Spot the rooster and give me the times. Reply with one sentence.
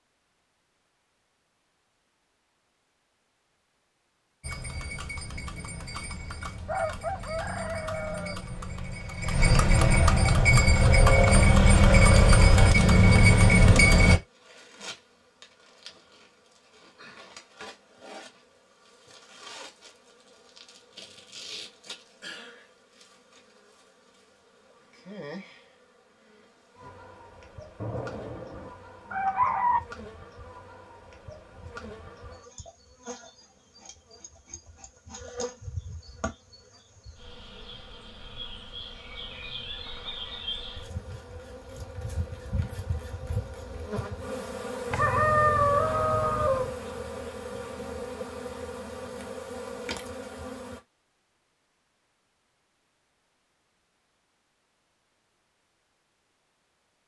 The rooster can be heard from 6.7 to 8.4 s, from 27.8 to 29.8 s and from 44.9 to 46.7 s.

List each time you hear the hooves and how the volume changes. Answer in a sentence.
You can hear the hooves from 4.4 to 14.2 s, getting louder.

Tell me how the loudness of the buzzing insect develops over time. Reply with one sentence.
The volume of the buzzing insect goes up.